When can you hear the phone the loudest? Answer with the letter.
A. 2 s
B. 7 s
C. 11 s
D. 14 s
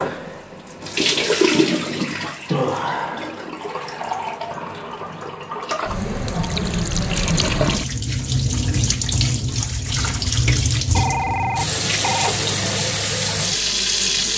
C.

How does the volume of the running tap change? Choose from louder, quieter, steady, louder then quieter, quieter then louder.
quieter then louder.